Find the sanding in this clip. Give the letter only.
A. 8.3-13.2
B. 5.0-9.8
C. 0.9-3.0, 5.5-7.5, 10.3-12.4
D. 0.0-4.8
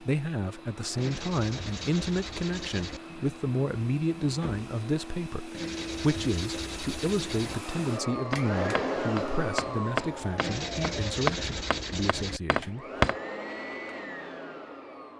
C.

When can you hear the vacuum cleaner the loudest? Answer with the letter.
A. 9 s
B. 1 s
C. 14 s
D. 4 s
A.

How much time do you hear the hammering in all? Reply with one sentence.
The hammering can be heard for 5 seconds in total.